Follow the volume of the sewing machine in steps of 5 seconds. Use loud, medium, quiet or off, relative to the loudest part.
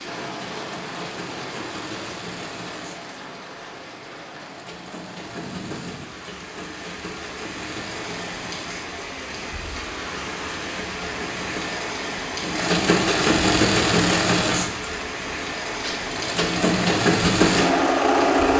quiet, quiet, loud, loud.